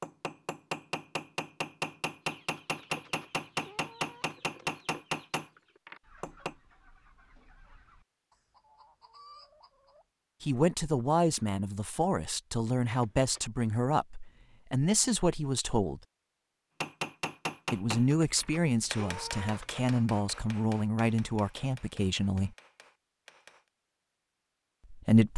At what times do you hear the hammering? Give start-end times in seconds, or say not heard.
0.0-6.5, 16.8-23.7.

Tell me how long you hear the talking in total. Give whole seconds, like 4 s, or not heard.
11 s.